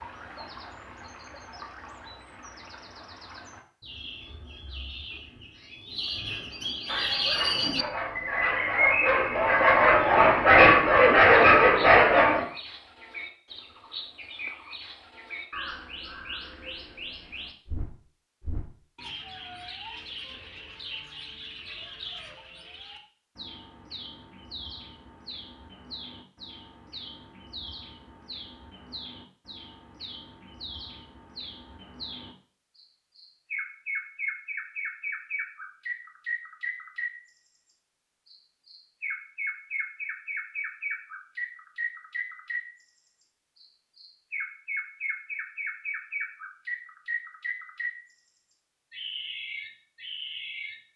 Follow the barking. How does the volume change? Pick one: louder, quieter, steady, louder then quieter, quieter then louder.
louder.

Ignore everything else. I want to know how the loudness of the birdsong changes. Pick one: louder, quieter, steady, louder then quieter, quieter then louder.
quieter then louder.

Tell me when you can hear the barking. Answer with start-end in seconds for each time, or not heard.
6.8-12.4.